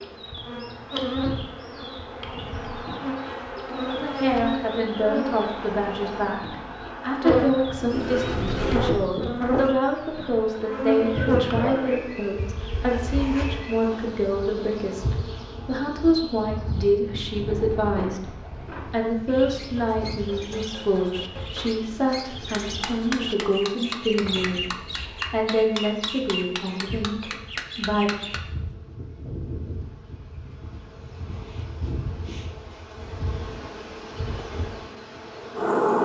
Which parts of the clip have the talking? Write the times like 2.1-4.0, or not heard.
4.0-24.6, 25.3-28.1.